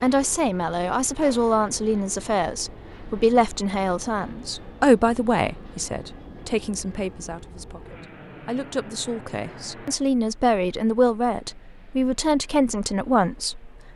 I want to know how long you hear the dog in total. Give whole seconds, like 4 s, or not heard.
not heard.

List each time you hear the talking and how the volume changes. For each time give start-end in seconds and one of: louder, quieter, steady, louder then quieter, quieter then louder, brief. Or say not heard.
0.0-13.9 quieter then louder.